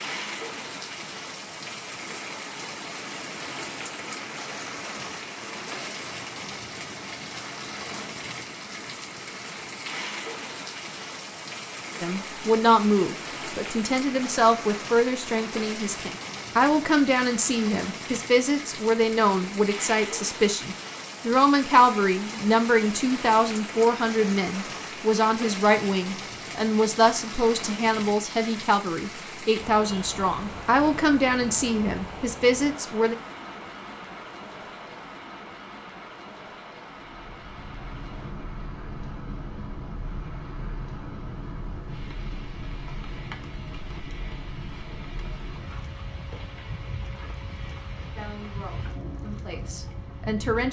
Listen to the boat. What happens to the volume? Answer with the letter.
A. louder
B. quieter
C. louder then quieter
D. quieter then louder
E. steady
E.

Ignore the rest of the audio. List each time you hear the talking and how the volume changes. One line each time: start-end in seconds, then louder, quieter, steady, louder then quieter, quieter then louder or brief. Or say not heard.
12.0-33.1 steady
48.1-50.6 brief.